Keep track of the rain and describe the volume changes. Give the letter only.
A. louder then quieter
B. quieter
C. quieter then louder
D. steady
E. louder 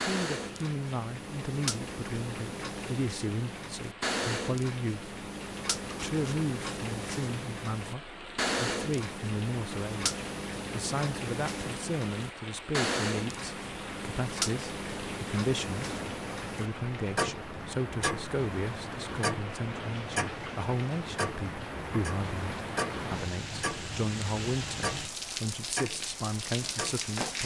E.